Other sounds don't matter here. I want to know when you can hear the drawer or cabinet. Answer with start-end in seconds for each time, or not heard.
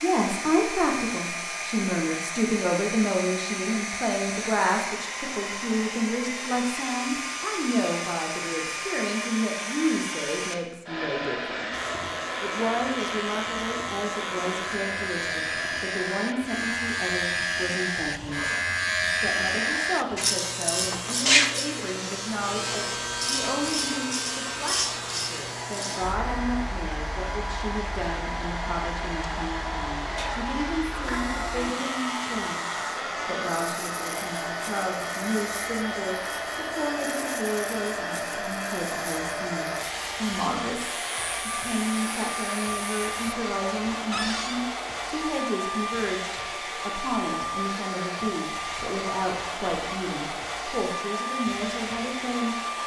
44.1-44.6.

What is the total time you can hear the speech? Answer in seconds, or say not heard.
52 s.